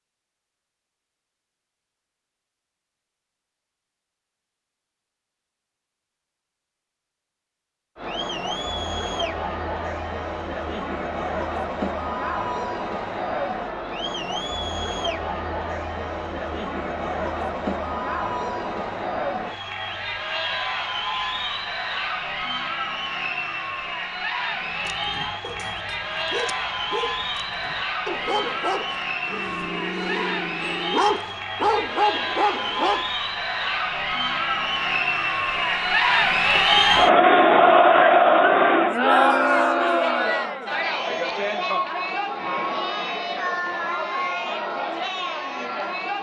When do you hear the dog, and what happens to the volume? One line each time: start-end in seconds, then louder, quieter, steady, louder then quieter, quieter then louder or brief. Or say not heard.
24.6-33.0 louder.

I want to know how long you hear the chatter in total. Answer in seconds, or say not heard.
38 s.